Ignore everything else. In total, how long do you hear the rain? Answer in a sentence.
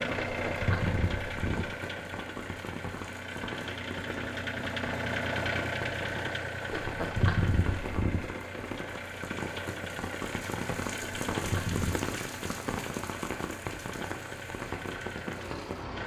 The rain can be heard for 16 seconds in total.